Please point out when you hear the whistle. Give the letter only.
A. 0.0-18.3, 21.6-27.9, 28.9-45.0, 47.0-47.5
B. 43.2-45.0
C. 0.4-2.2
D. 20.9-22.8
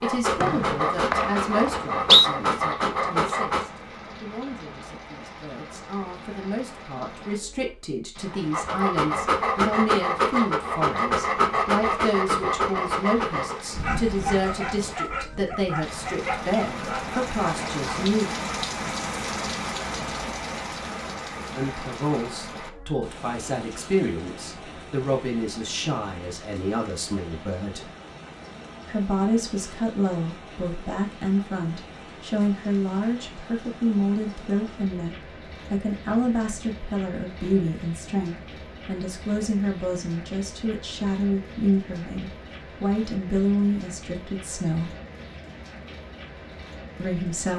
C.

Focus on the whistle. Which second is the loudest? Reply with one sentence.
The loudest moment of the whistle is at 2 seconds.